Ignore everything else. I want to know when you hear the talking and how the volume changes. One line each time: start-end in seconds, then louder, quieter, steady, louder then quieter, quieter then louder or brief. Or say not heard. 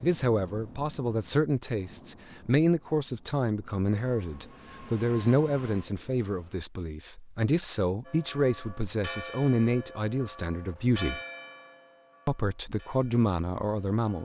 0.0-11.2 steady
12.2-14.2 brief.